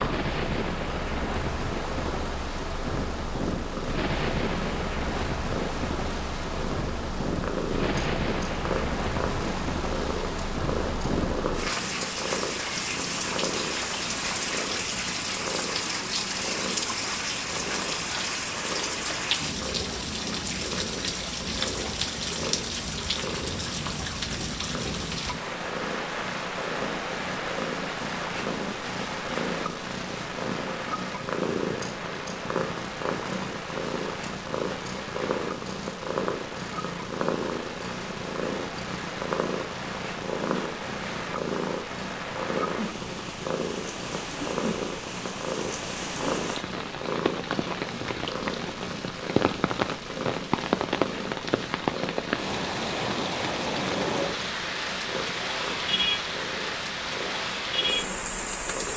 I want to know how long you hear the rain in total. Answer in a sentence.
You can hear the rain for 59 seconds altogether.